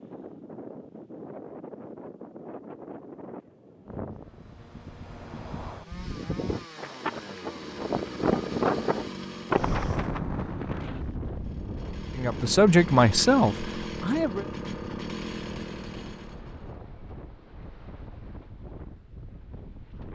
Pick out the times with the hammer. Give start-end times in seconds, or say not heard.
not heard.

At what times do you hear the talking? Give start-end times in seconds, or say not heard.
12.2-14.4.